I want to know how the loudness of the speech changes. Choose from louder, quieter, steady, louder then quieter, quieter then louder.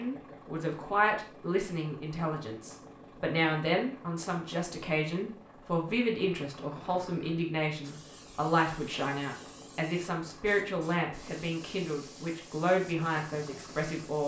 steady.